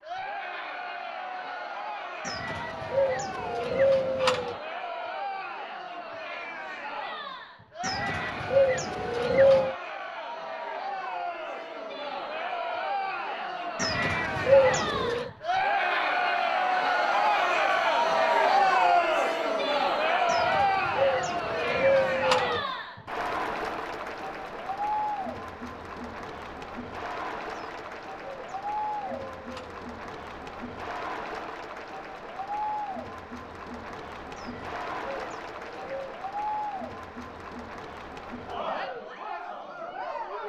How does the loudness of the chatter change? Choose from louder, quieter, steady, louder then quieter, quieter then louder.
louder then quieter.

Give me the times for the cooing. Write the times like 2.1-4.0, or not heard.
2.2-4.5, 7.8-9.8, 13.8-15.3, 20.2-22.6, 27.6-29.9, 34.4-36.2.